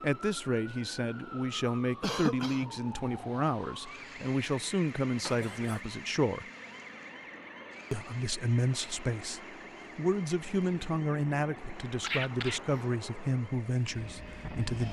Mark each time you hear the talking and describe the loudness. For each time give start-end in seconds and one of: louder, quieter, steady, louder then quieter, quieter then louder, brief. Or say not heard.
0.0-6.5 steady
7.9-14.8 steady.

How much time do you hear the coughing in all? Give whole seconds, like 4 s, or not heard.
2 s.